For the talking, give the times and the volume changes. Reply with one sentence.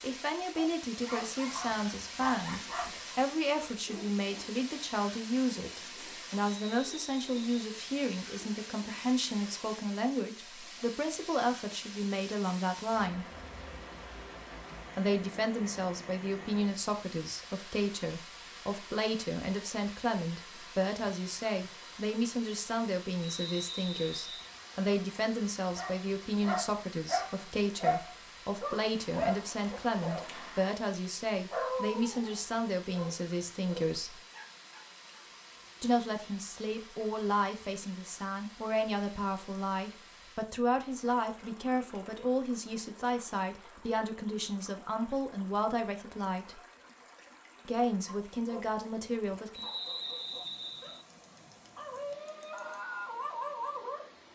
The talking can be heard from 0.0 to 13.2 s, at a steady volume; from 14.9 to 34.2 s, at a steady volume; from 35.8 to 46.6 s, at a steady volume; and briefly from 47.6 to 49.6 s.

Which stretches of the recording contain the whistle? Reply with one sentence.
You can hear the whistle from 6.7 to 7.6 s, from 23.2 to 24.5 s and from 49.5 to 51.0 s.